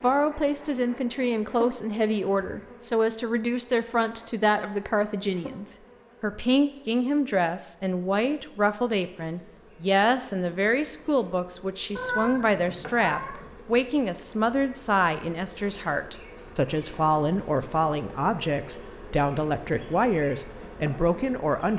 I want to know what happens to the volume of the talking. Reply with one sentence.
The volume of the talking stays about the same.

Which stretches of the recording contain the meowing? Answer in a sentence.
You can hear the meowing from 11.9 to 13.6 s.